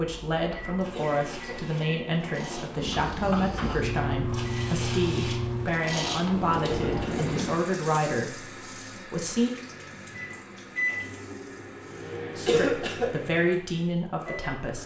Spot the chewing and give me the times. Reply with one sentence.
You can't hear the chewing here.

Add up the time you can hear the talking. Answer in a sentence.
You can hear the talking for 12 seconds altogether.